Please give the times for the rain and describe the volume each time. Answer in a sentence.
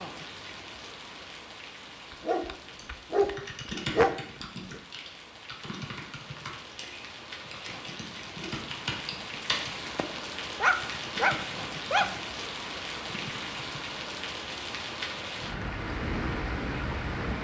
You can hear the rain from 0.0 to 17.3 s, getting louder.